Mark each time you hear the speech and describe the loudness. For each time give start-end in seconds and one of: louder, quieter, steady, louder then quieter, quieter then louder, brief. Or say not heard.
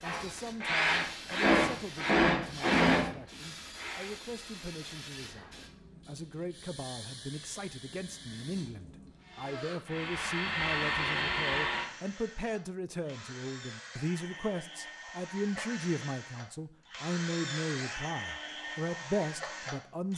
0.0-20.1 louder.